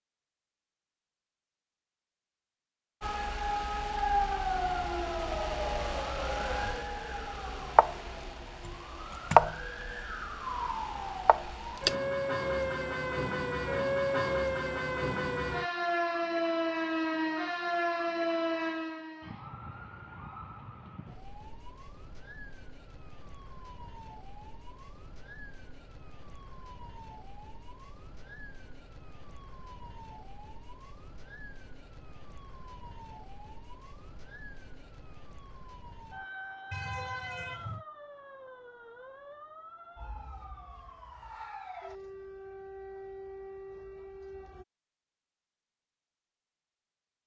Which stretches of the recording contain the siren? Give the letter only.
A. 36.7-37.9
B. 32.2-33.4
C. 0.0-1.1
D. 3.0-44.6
D.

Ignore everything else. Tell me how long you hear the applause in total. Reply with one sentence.
You can't hear the applause here.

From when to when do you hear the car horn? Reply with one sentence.
You can hear the car horn from 36.7 to 37.9 s.